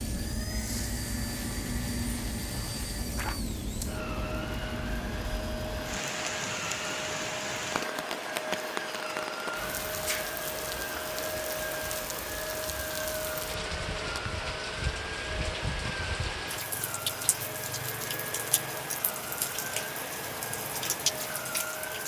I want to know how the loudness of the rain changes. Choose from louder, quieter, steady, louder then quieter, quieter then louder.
steady.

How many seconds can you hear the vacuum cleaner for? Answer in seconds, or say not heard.
22 s.